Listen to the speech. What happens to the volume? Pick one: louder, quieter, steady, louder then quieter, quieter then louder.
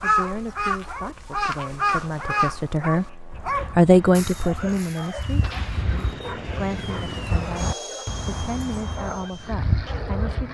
louder then quieter.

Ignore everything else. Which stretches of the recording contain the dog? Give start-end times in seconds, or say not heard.
0.1-8.2, 8.9-10.5.